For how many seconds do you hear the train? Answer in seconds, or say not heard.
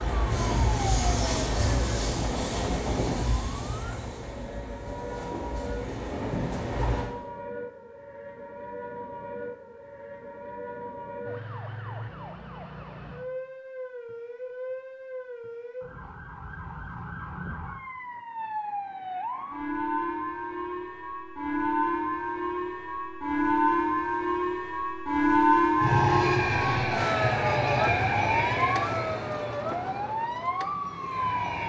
13 s.